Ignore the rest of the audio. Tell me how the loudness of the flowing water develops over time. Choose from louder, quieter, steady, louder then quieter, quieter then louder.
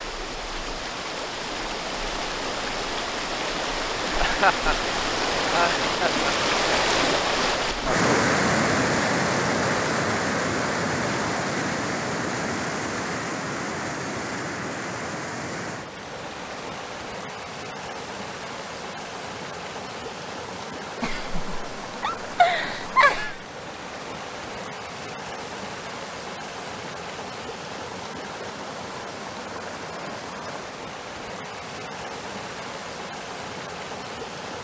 quieter.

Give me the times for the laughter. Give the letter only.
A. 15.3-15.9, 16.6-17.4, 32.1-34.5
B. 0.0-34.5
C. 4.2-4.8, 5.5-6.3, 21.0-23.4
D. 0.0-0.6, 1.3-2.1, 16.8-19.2
C.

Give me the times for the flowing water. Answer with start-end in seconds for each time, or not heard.
0.0-34.5.